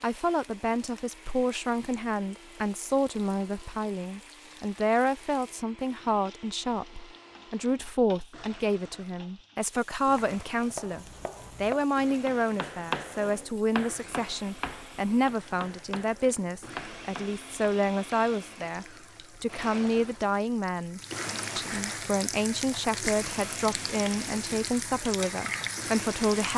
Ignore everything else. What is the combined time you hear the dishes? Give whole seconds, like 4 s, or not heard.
not heard.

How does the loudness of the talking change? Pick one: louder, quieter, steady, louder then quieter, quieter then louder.
steady.